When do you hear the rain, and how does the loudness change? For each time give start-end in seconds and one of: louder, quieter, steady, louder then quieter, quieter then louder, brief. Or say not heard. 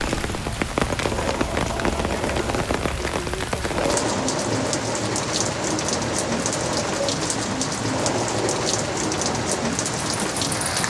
0.0-10.8 steady.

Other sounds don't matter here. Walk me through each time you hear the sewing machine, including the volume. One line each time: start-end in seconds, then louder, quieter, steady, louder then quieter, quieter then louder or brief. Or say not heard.
0.0-10.8 steady.